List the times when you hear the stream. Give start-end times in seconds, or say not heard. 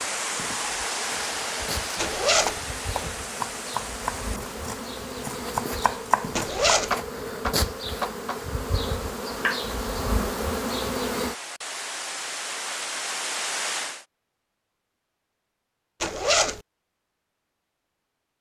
0.0-14.1.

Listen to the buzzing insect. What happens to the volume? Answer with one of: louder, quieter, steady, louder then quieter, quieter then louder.
louder.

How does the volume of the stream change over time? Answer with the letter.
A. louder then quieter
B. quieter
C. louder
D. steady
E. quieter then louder
E.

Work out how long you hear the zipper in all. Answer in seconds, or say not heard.
2 s.